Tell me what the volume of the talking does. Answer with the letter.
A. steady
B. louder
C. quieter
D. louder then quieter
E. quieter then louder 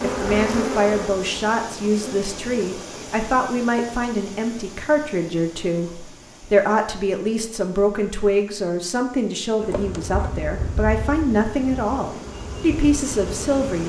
A.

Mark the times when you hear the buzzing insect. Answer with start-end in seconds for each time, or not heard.
0.0-3.1, 9.6-13.8.